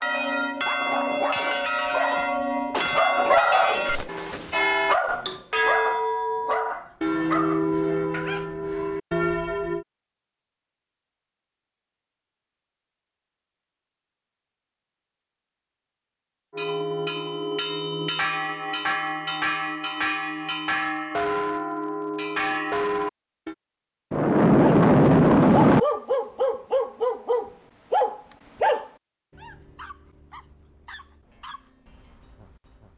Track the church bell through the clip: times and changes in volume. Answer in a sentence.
You can hear the church bell from 0.0 to 9.8 s, at a steady volume; and from 16.5 to 23.6 s, at a steady volume.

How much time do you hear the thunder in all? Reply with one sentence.
You can hear the thunder for 2 seconds altogether.